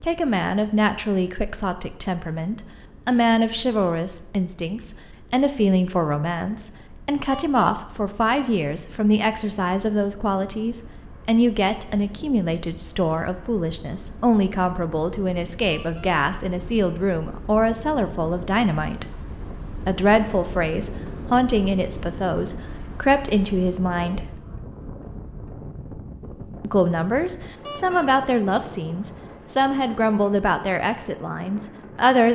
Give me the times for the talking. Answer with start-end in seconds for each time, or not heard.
0.0-19.1, 19.9-24.4, 26.6-32.3.